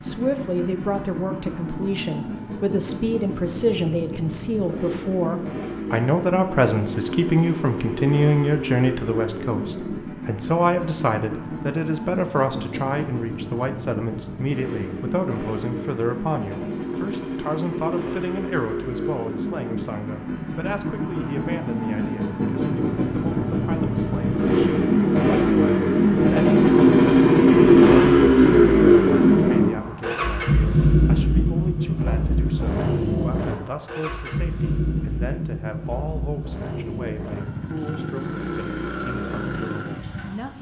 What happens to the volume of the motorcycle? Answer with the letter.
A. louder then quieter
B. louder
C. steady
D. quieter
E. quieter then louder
A.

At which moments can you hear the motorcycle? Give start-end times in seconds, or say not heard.
0.0-40.5.